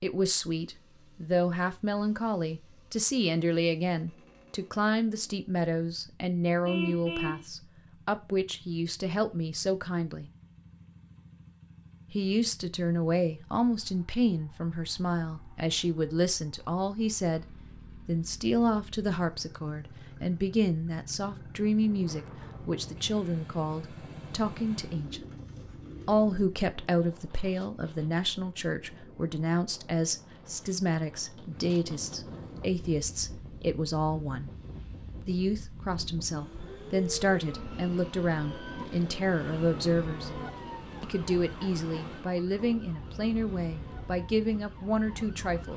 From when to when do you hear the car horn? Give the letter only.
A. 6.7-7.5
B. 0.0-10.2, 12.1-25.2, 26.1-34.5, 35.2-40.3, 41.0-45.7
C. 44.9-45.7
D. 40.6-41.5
A.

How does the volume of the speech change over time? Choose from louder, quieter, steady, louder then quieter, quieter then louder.
steady.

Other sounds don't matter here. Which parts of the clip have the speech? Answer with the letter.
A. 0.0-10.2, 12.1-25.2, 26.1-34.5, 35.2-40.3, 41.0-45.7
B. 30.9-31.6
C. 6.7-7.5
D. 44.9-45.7
A.